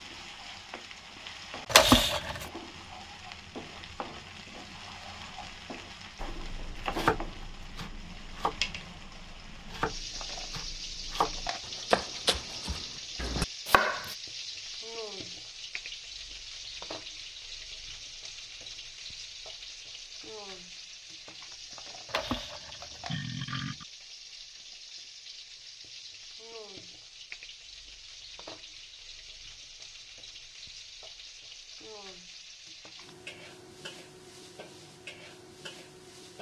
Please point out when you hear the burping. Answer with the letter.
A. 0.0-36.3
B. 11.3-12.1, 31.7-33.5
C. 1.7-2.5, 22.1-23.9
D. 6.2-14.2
C.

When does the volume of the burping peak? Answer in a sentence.
The loudest moment of the burping is at 2 seconds.